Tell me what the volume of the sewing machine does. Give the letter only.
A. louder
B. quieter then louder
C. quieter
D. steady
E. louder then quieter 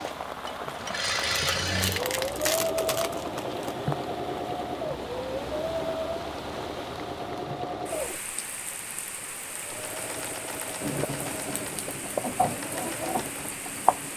C.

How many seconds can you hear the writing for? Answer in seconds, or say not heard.
3 s.